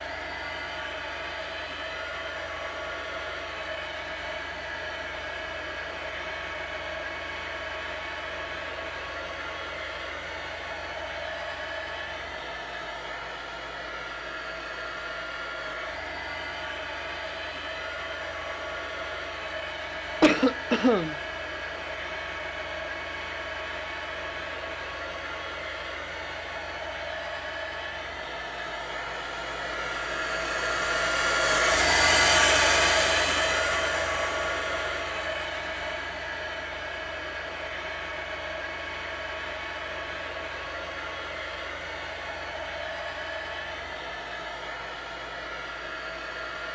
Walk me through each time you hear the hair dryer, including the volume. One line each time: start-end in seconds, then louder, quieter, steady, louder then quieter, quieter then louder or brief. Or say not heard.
0.0-46.7 louder then quieter.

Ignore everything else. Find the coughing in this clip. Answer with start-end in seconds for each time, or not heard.
20.2-21.1.